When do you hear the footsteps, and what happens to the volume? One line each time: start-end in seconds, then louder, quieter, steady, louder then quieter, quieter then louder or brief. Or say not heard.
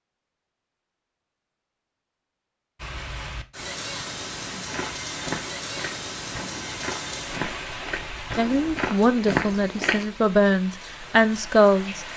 4.7-10.1 louder.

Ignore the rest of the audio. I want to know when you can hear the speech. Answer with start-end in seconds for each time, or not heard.
8.3-12.0.